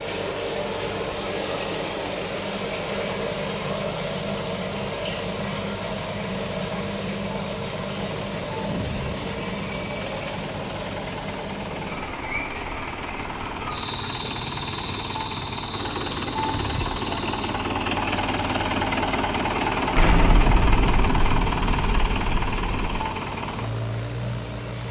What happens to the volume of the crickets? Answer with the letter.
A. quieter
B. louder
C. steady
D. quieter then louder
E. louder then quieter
A.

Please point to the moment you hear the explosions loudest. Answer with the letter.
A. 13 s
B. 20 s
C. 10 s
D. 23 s
B.